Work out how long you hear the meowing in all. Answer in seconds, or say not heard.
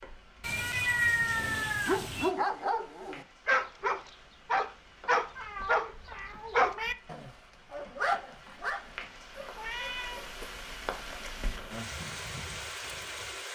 4 s.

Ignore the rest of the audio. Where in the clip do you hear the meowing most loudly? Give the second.
1 s.